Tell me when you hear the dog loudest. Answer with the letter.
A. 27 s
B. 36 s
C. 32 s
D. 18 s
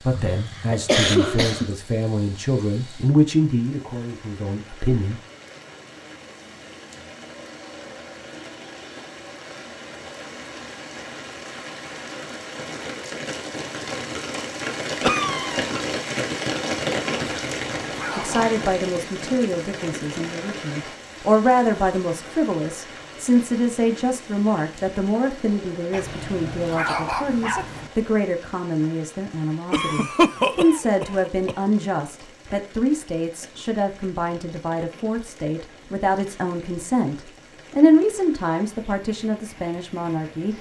A.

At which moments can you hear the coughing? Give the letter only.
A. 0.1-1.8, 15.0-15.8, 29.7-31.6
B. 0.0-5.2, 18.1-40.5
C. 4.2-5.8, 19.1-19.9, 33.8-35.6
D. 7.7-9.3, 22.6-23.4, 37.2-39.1
A.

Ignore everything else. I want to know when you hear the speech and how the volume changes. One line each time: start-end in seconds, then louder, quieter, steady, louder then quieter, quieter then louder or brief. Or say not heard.
0.0-5.2 louder then quieter
18.1-40.5 steady.